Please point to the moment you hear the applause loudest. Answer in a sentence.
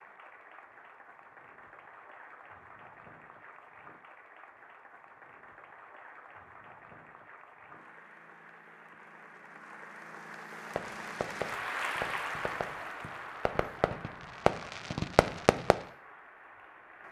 The volume of the applause peaks at 12 seconds.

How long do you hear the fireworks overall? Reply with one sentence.
You can hear the fireworks for 5 seconds altogether.